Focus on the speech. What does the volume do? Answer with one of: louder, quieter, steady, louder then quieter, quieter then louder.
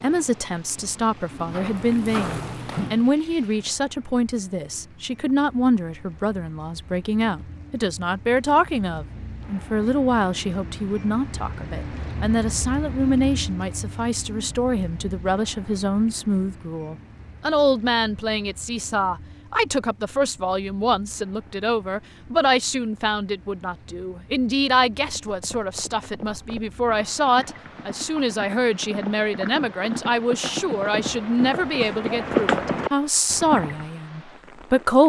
steady.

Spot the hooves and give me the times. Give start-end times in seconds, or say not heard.
0.0-3.1, 25.0-33.9.